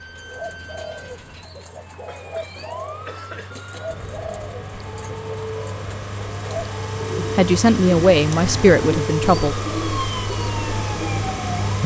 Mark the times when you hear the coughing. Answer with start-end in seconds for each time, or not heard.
2.0-3.5.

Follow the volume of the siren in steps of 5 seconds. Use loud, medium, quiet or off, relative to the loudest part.
quiet, loud, loud.